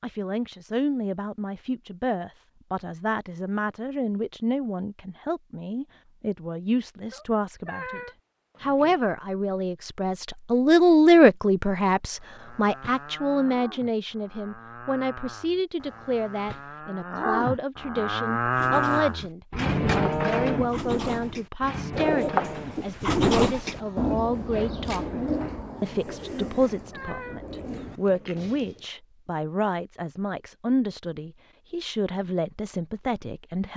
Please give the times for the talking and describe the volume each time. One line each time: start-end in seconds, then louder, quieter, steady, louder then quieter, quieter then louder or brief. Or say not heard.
0.0-33.7 louder then quieter.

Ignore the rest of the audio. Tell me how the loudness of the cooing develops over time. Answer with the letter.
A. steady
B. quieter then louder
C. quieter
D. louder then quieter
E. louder
D.